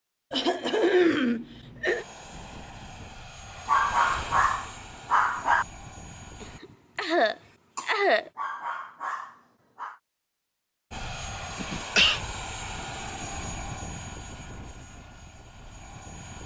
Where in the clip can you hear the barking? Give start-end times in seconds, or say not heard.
3.6-5.7, 8.3-10.0.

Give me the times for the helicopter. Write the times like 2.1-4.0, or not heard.
1.9-6.6, 10.9-16.4.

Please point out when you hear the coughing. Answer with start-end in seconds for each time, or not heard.
0.3-2.0, 6.4-8.3, 11.4-12.2.